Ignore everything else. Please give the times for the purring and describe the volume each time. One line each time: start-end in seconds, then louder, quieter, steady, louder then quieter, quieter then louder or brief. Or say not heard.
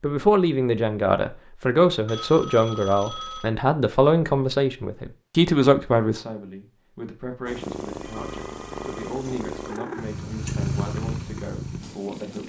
7.5-12.4 louder then quieter.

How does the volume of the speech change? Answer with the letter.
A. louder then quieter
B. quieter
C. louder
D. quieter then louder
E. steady
B.